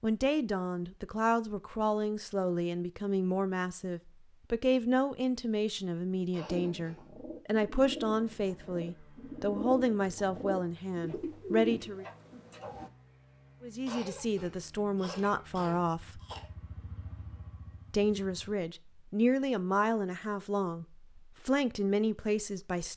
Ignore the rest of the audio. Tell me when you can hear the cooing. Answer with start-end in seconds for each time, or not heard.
6.5-12.9.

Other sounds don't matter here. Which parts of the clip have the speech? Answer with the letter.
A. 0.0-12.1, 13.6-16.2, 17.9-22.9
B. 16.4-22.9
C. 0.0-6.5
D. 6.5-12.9
A.